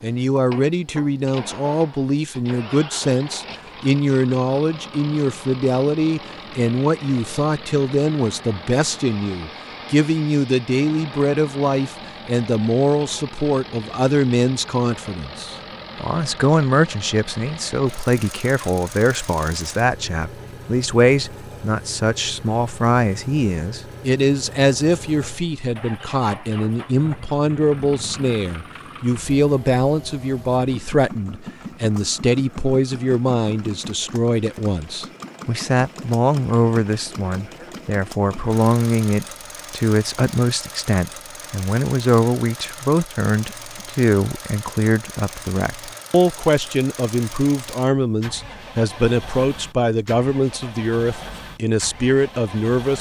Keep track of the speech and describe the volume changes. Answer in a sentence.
The volume of the speech stays about the same.